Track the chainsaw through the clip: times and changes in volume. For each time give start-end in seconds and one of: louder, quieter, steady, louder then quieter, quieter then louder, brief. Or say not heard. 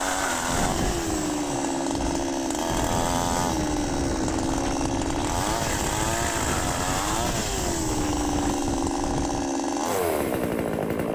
0.0-11.1 steady.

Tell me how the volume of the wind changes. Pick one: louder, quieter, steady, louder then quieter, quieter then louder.
steady.